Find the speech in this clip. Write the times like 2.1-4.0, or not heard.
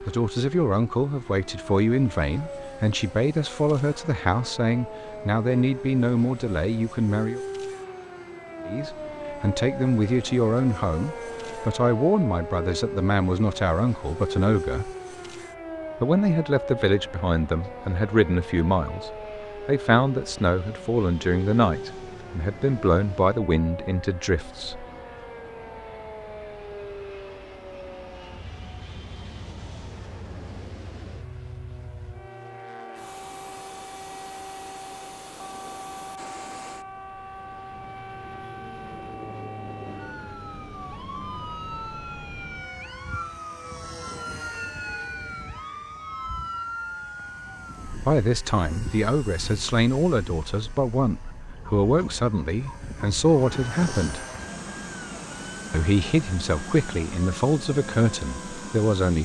0.0-7.4, 8.7-14.9, 16.0-24.9, 48.0-54.2, 55.7-59.2.